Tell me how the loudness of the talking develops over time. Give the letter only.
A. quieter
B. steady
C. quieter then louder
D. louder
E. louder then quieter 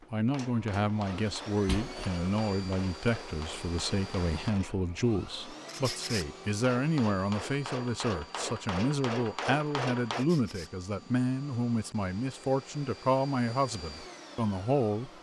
B.